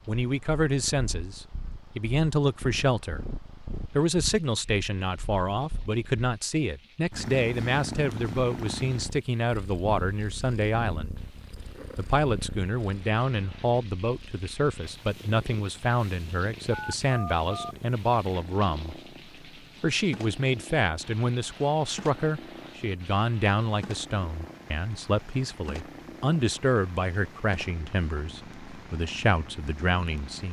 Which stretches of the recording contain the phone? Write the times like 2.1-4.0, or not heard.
16.7-17.8.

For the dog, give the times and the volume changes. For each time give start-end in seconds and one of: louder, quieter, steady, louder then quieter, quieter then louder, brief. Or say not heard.
not heard.